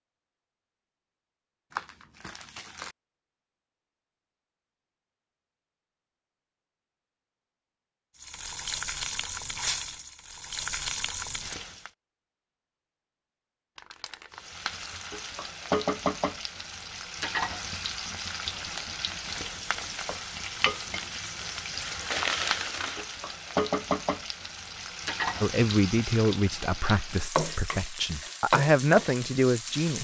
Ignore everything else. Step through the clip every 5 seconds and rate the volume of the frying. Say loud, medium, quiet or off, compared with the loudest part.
off, loud, loud, loud, loud, loud.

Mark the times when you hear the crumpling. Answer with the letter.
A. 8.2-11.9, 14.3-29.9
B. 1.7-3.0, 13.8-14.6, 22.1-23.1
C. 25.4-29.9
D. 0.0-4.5
B.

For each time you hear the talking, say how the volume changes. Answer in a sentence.
You can hear the talking from 25.4 to 29.9 s, getting quieter then louder.